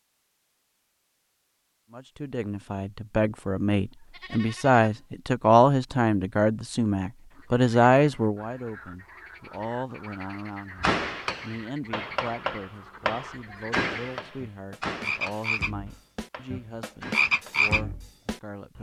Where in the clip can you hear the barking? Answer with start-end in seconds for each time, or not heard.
not heard.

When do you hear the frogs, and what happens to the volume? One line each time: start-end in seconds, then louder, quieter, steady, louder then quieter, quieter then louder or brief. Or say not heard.
7.3-18.7 louder.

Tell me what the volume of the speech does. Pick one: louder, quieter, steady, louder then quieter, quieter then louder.
quieter.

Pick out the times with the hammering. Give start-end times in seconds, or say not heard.
10.8-17.6.